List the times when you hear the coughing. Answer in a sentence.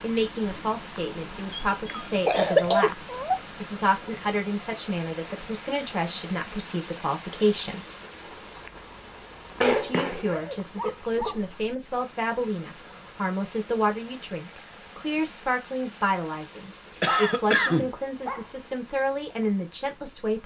The coughing can be heard from 1.9 to 2.9 s, from 9.6 to 10.6 s and from 17.0 to 17.9 s.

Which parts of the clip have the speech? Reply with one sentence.
You can hear the speech from 0.0 to 7.8 s and from 9.6 to 20.4 s.